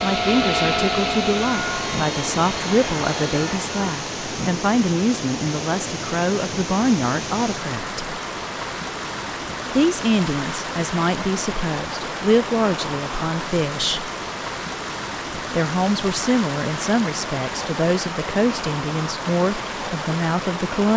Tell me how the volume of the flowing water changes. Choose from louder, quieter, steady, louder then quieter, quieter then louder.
steady.